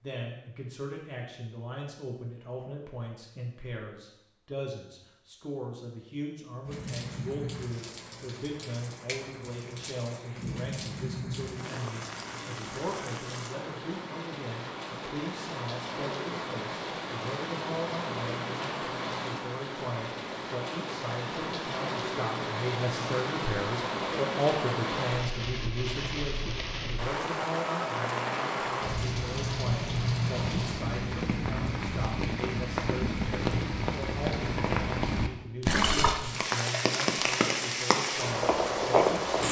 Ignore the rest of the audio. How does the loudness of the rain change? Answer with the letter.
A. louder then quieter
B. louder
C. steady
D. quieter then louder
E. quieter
B.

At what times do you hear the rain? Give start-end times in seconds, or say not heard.
6.7-39.4.